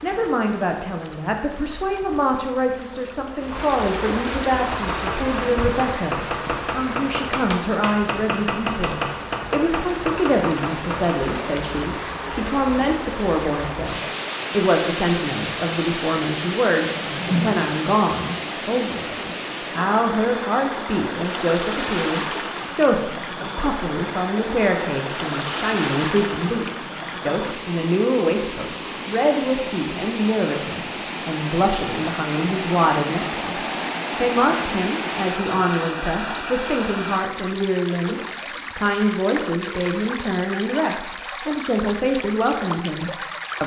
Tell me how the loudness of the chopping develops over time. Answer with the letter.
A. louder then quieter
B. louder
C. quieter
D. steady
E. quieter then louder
D.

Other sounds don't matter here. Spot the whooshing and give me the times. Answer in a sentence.
The whooshing can be heard from 16.9 to 17.8 s and from 38.0 to 38.8 s.